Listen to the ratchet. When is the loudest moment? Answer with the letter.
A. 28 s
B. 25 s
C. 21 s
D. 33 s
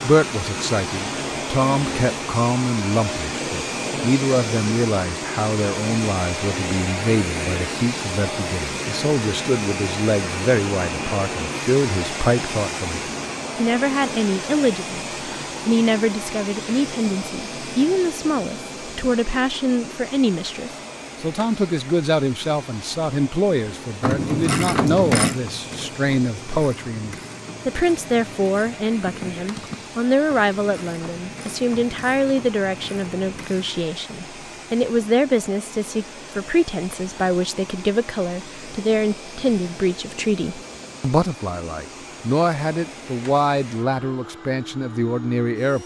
B.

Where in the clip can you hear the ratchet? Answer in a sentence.
You can hear the ratchet from 24.0 to 33.8 s.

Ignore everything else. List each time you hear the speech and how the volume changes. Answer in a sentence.
The speech can be heard from 0.0 to 45.8 s, at a steady volume.